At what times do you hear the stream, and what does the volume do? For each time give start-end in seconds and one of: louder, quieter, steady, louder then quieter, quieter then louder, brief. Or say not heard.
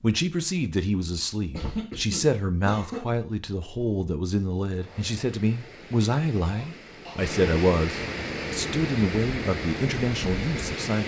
4.7-11.0 louder.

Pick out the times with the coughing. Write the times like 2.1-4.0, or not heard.
1.5-3.0, 6.4-7.2.